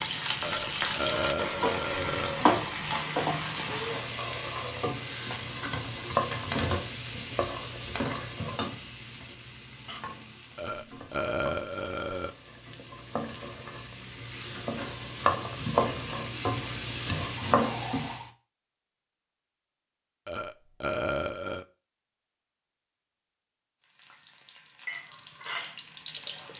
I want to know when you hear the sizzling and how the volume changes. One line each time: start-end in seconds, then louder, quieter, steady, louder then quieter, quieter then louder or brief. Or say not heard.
0.0-18.3 quieter then louder
23.8-26.5 brief.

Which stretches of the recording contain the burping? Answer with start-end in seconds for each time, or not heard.
0.4-2.5, 10.6-12.3, 20.2-21.6.